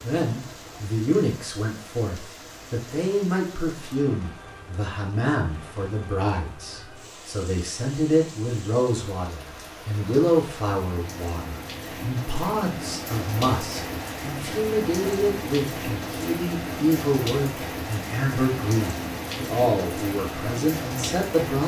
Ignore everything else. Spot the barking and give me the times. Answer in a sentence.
The barking can't be heard in this clip.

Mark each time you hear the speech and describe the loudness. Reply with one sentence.
The speech can be heard from 0.0 to 21.6 s, at a steady volume.